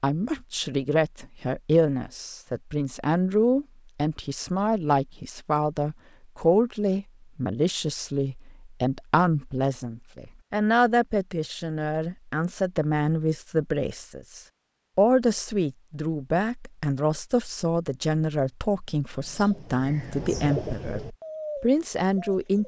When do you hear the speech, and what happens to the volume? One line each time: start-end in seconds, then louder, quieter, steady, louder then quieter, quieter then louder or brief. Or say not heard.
0.0-22.6 steady.